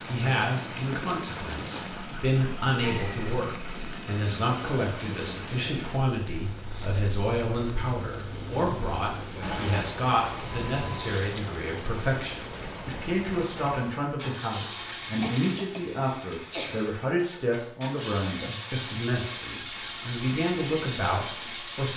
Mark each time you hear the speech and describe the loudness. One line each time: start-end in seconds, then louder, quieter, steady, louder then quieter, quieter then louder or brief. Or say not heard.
0.1-21.9 steady.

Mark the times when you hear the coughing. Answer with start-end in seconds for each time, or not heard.
2.8-3.4, 9.4-9.8, 15.2-16.9.